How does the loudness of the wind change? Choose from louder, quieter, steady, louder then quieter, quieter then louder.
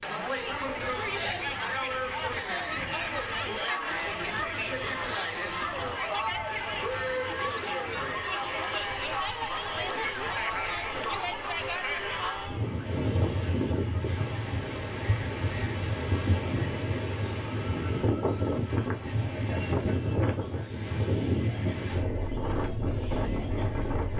louder.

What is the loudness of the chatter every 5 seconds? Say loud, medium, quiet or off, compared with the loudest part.
loud, loud, loud, quiet, quiet.